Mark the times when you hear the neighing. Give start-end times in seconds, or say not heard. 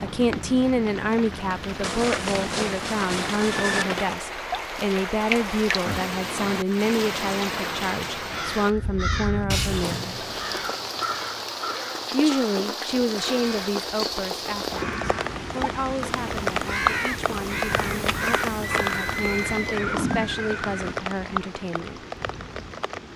1.8-3.9, 9.9-10.8, 18.8-20.9.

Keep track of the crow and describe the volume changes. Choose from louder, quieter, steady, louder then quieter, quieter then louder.
quieter then louder.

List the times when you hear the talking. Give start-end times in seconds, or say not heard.
0.0-10.2, 12.1-22.0.